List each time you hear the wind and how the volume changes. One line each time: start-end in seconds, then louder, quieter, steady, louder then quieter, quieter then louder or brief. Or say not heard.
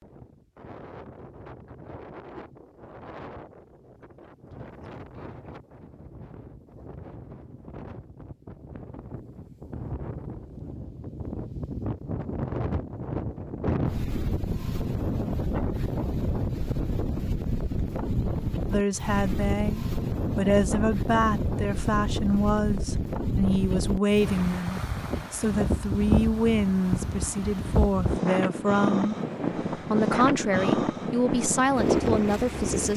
0.0-32.9 louder.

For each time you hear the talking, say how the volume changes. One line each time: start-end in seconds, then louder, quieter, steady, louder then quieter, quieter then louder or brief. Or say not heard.
18.7-32.9 steady.